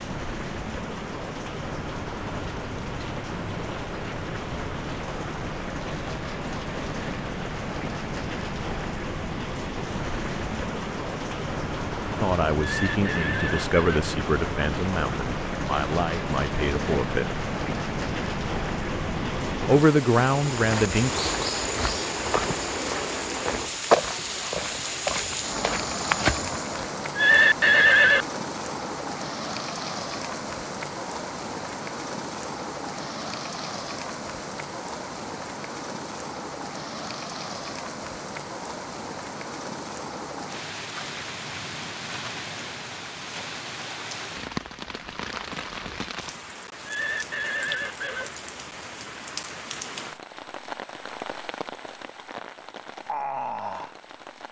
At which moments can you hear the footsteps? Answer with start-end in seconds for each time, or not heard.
20.4-26.9.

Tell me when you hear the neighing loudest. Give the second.
28 s.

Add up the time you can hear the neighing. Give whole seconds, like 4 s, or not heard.
4 s.